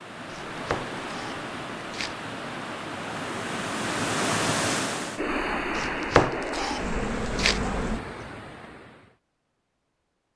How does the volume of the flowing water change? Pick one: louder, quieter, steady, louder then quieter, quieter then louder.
louder then quieter.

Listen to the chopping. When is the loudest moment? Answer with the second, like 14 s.
6 s.